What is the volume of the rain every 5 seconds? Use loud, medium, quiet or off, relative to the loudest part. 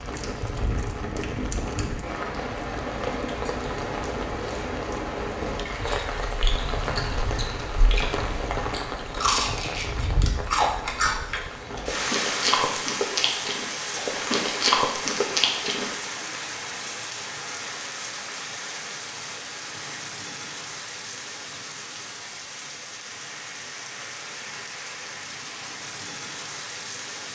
loud, loud, loud, loud, medium, medium.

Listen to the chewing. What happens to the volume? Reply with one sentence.
The volume of the chewing goes up.